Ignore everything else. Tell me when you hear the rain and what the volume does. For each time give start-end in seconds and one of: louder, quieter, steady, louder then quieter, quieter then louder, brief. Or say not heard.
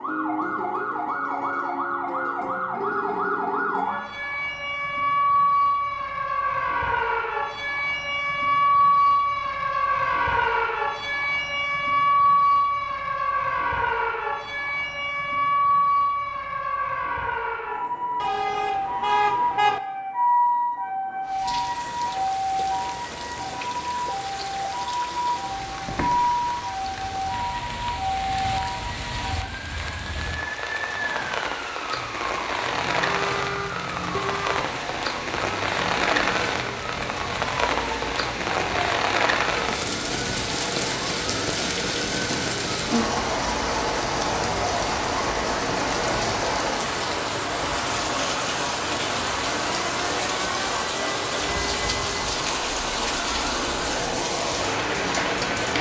21.2-55.7 louder.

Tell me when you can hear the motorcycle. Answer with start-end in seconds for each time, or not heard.
not heard.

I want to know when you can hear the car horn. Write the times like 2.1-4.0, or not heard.
18.2-19.8, 33.0-34.6.